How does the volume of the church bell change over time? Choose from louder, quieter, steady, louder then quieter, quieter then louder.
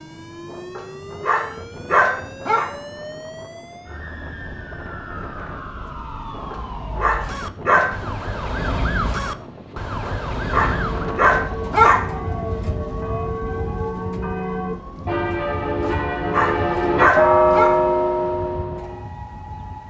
louder.